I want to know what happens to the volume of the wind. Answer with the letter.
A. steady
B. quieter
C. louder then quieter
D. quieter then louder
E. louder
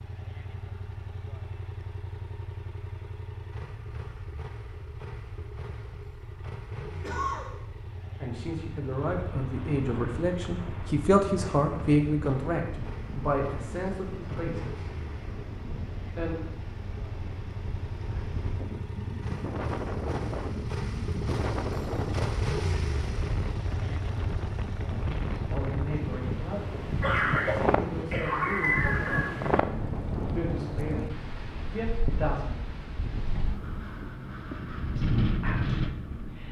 E.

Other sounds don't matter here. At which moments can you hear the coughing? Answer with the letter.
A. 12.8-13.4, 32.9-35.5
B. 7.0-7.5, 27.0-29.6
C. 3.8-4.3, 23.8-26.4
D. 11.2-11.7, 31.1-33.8
B.